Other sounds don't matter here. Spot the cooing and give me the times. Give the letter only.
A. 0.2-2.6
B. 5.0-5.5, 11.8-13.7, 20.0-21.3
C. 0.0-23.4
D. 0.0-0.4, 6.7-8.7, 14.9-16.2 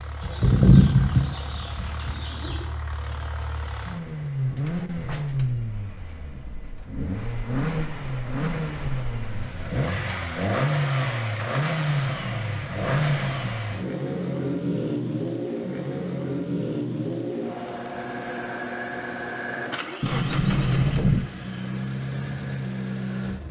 A.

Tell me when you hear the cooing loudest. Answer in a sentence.
The loudest moment of the cooing is at 1 second.